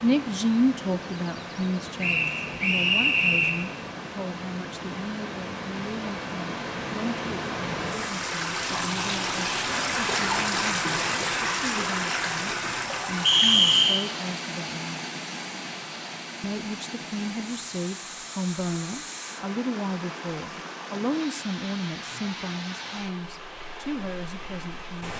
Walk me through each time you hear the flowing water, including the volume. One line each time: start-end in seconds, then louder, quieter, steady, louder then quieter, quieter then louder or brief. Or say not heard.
0.0-25.1 louder then quieter.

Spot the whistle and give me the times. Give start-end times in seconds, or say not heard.
2.0-3.6, 13.2-14.1.